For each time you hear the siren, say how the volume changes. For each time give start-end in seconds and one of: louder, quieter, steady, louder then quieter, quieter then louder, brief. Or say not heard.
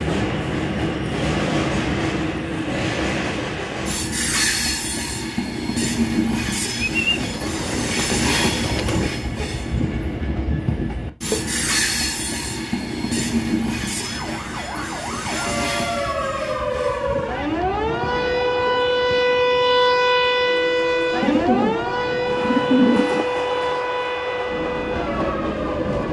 13.9-26.0 louder then quieter.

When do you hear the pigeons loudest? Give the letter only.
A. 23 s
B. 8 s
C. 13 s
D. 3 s
A.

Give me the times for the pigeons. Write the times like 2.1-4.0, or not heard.
6.8-9.1, 21.2-23.2.